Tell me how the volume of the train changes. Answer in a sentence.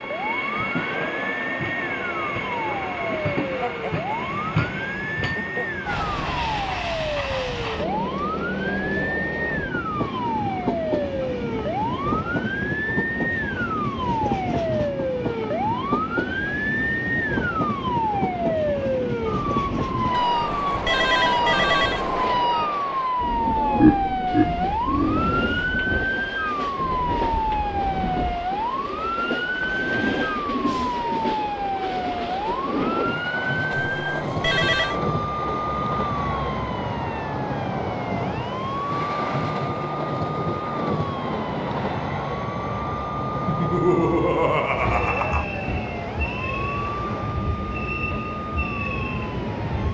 The volume of the train stays about the same.